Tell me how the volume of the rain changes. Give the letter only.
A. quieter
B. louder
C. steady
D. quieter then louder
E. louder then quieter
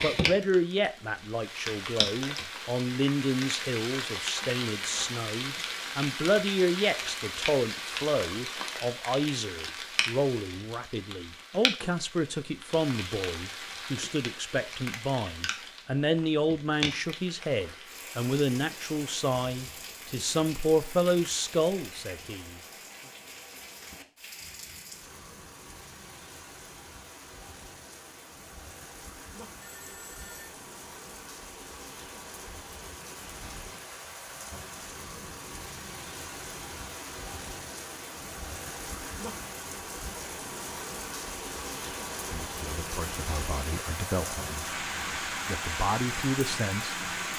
D.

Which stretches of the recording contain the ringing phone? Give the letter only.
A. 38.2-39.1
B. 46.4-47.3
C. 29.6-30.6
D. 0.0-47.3
C.